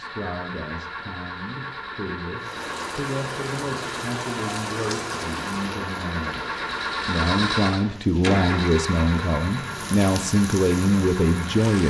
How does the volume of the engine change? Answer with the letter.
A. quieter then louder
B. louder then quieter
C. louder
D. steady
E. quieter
B.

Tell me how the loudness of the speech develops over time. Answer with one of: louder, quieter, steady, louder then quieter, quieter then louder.
louder.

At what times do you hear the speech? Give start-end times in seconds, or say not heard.
0.0-11.8.